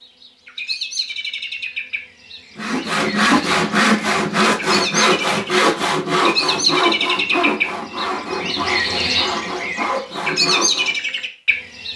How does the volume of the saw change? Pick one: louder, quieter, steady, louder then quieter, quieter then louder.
quieter.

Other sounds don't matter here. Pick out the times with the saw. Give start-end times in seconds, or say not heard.
2.5-10.9.